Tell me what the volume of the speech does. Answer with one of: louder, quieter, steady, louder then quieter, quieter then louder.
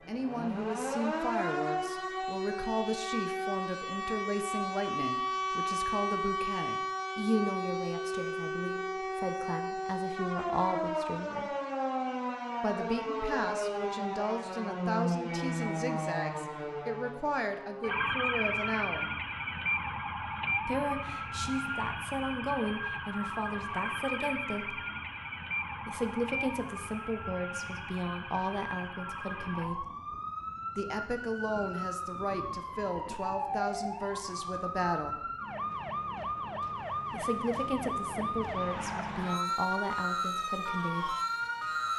steady.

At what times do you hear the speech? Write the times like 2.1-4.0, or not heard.
0.1-11.5, 12.6-19.1, 20.6-24.8, 25.9-29.9, 30.8-35.2, 37.1-41.1.